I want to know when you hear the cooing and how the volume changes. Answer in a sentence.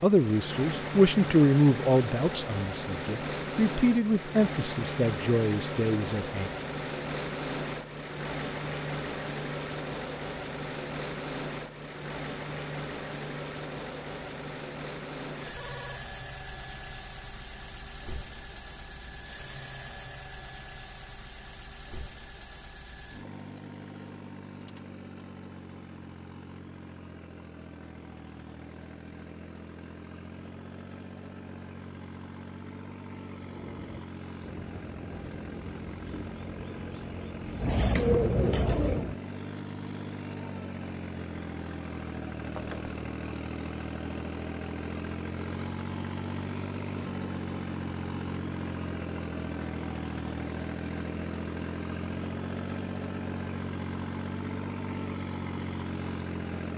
The cooing can be heard from 33.4 to 39.1 s, getting louder.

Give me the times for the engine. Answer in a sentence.
The engine can be heard from 0.0 to 56.7 s.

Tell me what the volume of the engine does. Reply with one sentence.
The loudness of the engine goes down, then up.